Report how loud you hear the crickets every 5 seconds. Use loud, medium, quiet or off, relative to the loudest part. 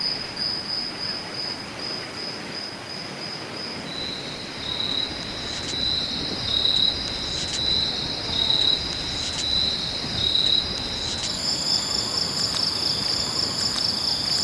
medium, loud, loud.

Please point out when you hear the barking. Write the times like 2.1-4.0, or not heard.
not heard.